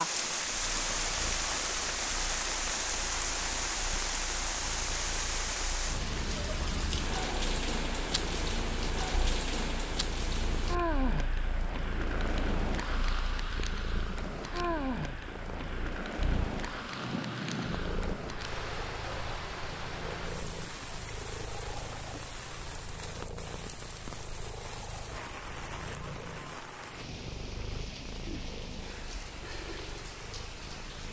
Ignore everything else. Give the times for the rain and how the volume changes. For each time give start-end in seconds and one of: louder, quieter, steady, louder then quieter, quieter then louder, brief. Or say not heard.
0.0-31.0 quieter.